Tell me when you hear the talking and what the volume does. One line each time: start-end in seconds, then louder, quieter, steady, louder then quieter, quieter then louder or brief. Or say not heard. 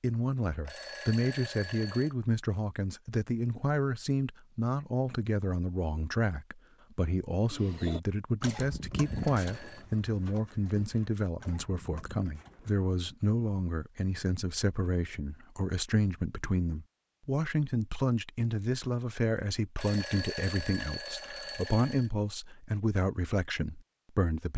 0.0-24.5 steady.